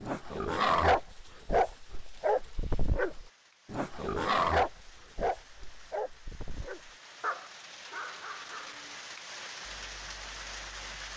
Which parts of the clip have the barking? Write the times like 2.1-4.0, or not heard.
0.0-8.9.